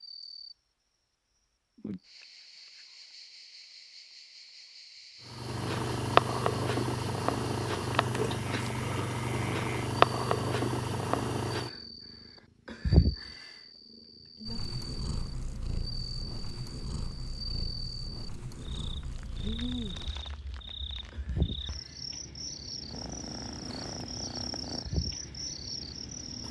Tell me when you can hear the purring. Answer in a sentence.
You can hear the purring from 5.2 to 13.5 s, from 14.4 to 20.2 s, from 21.1 to 21.9 s and from 22.9 to 25.5 s.